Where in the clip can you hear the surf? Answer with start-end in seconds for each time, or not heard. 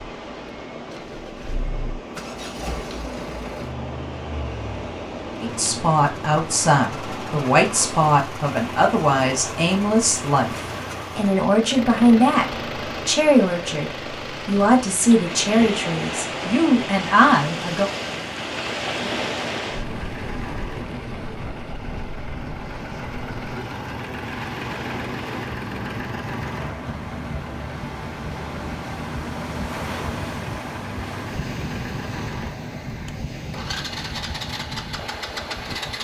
0.0-35.9.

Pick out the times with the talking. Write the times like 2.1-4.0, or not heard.
5.4-17.9.